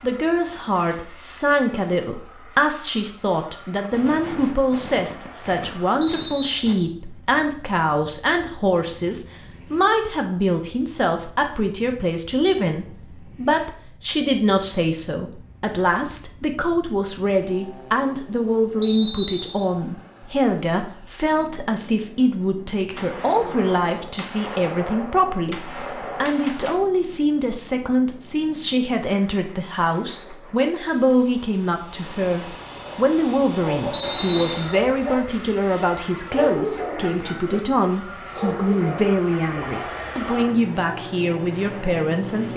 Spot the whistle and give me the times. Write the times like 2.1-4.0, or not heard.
6.0-6.6, 18.8-19.6, 33.9-34.8.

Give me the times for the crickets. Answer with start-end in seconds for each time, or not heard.
not heard.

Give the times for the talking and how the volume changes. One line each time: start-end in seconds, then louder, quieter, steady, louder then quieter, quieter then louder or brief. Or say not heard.
0.0-42.5 steady.